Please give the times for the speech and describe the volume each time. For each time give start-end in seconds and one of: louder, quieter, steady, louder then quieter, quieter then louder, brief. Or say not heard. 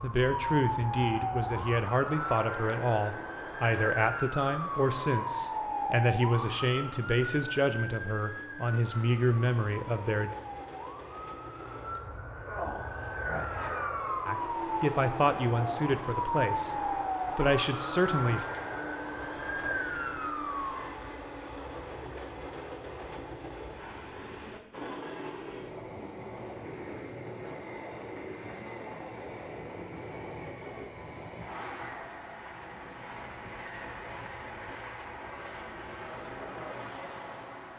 0.0-10.3 steady
14.2-18.4 quieter then louder.